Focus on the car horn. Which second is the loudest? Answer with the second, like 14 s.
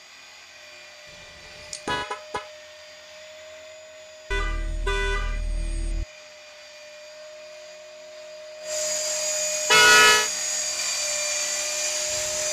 10 s.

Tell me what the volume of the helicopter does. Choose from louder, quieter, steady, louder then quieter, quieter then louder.
louder.